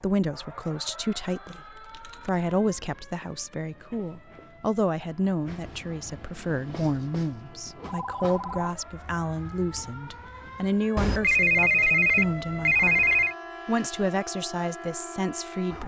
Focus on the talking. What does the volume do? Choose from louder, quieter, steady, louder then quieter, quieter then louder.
steady.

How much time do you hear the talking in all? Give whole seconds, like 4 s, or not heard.
16 s.